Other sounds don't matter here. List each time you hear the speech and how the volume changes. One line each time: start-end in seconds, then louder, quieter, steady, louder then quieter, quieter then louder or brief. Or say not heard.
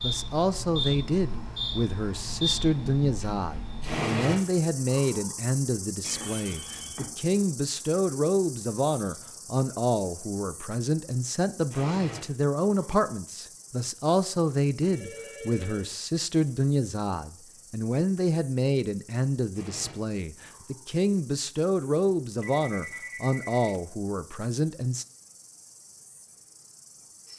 0.0-25.1 steady.